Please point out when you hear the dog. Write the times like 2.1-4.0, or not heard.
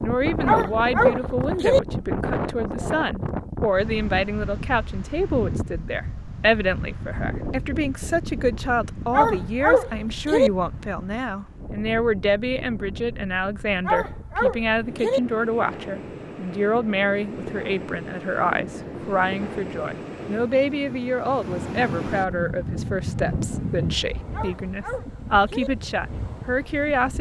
0.5-1.8, 9.1-10.5, 13.8-15.2, 24.3-25.7.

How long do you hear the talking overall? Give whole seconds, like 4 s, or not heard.
27 s.